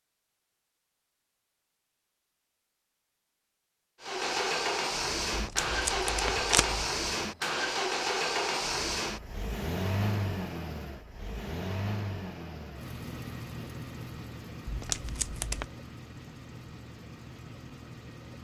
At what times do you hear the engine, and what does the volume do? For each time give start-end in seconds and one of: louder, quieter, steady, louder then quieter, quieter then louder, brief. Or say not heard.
4.0-18.3 quieter.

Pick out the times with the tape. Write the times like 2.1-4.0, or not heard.
5.3-6.9, 14.7-15.7.